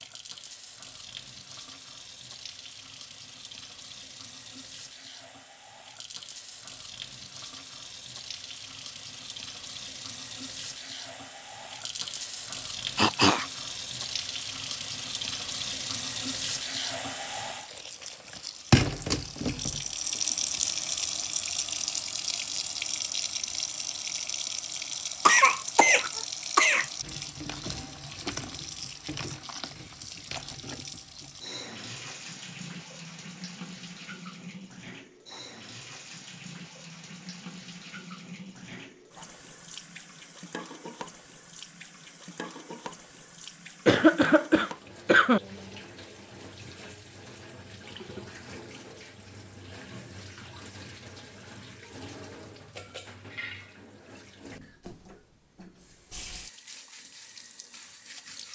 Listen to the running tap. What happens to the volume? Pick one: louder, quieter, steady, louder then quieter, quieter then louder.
louder then quieter.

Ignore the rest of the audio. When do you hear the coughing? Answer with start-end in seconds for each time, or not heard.
12.9-13.4, 25.2-26.9, 43.9-45.4.